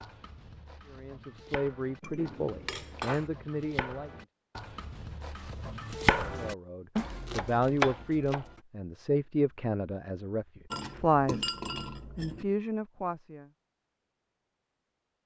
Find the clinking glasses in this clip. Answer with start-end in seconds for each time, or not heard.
2.0-3.3, 10.7-12.4.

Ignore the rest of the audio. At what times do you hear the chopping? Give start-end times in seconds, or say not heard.
0.0-8.6.